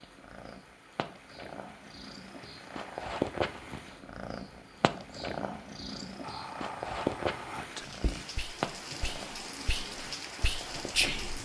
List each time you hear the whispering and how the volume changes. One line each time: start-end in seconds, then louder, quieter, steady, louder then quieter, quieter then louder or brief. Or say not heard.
6.2-11.4 louder.